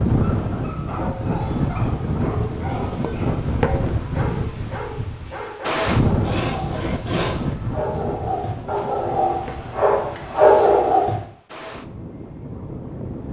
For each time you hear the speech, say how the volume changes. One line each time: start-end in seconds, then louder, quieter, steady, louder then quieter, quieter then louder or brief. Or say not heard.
not heard.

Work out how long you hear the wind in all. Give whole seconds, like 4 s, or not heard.
13 s.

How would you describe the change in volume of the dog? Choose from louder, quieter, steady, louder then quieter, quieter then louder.
louder.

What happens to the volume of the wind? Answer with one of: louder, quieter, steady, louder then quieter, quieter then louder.
quieter.